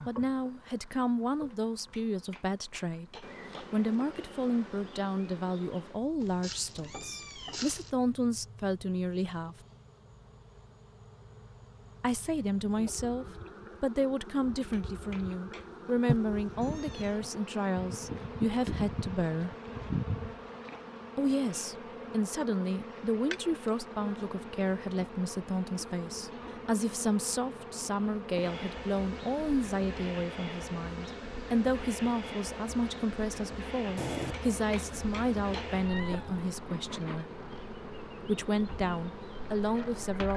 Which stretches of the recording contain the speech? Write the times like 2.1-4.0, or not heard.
0.1-9.6, 12.0-19.6, 21.1-37.2, 38.2-40.3.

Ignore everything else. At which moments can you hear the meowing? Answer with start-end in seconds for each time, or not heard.
6.2-8.0, 16.1-17.3, 34.0-36.5.